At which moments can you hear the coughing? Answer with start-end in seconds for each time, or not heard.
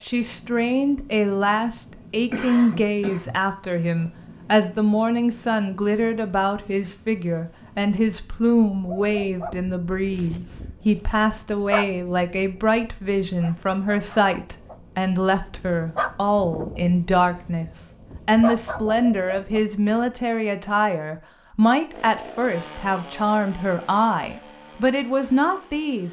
2.3-3.4.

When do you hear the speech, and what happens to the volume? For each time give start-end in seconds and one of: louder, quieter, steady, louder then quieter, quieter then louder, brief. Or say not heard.
0.0-26.0 steady.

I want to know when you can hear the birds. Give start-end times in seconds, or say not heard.
not heard.